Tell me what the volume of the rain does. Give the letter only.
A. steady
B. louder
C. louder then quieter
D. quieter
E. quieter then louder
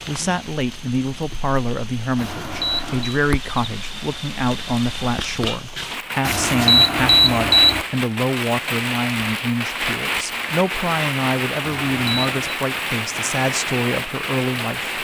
B.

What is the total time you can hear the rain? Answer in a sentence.
The rain can be heard for 15 seconds in total.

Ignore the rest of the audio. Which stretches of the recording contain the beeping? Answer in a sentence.
You can hear the beeping from 2.1 to 3.2 s, from 6.2 to 7.8 s and from 11.6 to 12.3 s.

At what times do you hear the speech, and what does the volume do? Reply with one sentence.
You can hear the speech from 0.1 to 14.9 s, at a steady volume.